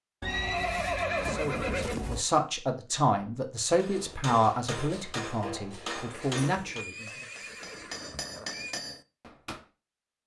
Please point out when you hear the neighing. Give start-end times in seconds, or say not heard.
0.2-2.2, 6.1-8.8.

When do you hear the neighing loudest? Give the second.
1 s.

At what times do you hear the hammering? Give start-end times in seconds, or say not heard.
3.8-9.7.